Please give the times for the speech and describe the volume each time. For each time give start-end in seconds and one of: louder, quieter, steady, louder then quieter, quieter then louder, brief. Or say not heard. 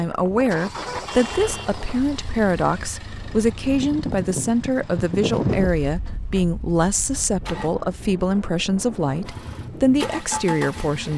0.0-11.1 steady.